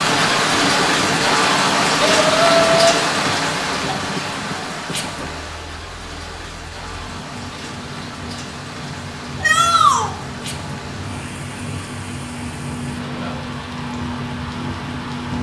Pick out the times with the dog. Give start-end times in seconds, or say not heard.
not heard.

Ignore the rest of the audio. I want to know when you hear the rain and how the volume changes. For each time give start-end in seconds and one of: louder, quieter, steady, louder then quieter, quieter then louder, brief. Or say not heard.
0.0-15.3 quieter.